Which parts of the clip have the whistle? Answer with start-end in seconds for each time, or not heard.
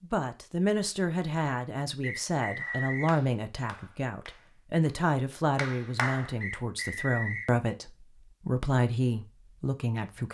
2.0-3.1, 6.4-7.5.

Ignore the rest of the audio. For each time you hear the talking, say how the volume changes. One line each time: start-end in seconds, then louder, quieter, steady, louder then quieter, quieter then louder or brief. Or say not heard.
0.0-10.2 steady.